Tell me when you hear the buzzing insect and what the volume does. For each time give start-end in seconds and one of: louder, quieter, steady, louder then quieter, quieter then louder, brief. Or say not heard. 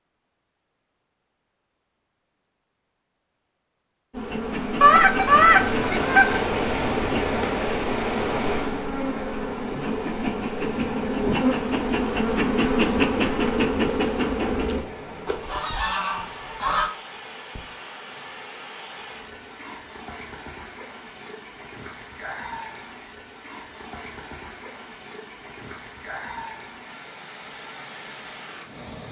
4.1-14.8 louder.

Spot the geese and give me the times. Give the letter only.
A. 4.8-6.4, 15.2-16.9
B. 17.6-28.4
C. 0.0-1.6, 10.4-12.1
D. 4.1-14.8
A.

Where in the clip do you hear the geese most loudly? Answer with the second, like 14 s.
5 s.